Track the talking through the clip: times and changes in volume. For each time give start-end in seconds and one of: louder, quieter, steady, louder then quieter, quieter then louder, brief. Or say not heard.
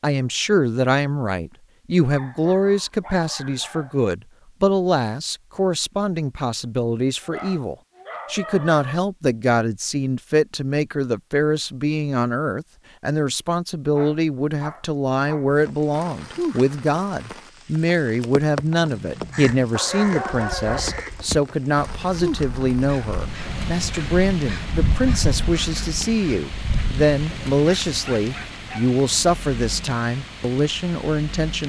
0.0-31.6 steady.